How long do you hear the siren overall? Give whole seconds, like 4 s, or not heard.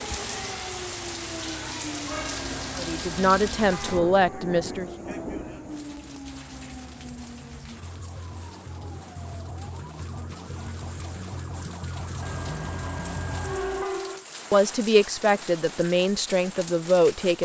14 s.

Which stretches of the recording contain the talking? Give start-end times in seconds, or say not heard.
2.8-4.9, 14.5-17.4.